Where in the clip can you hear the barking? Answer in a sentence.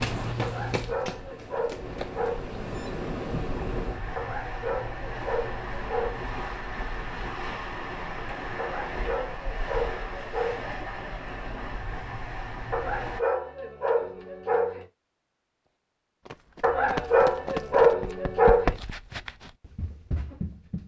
You can hear the barking from 0.4 to 2.5 s, from 4.2 to 6.2 s, from 8.6 to 10.7 s, from 12.7 to 14.8 s and from 16.6 to 18.8 s.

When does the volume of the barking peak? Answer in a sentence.
The loudest moment of the barking is at 18 seconds.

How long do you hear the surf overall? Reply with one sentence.
The surf can be heard for 13 seconds in total.